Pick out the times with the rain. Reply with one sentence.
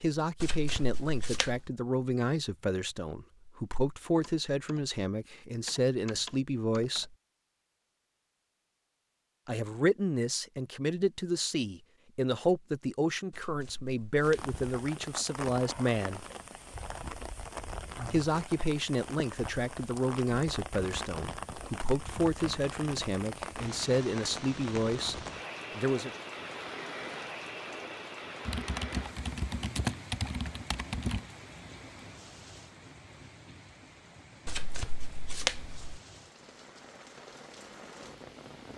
You can hear the rain from 14.2 to 38.7 s.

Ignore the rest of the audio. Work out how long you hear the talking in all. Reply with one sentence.
You can hear the talking for 22 seconds altogether.